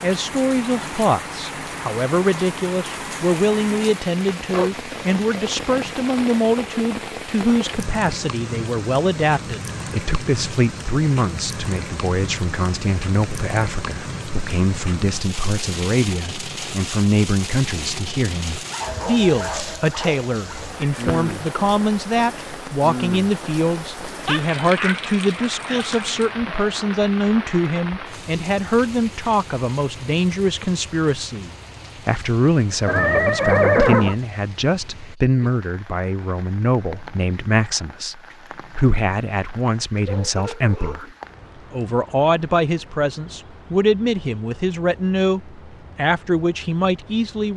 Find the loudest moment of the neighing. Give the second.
34 s.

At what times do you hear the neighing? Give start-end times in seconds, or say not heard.
20.9-21.3, 32.9-34.1.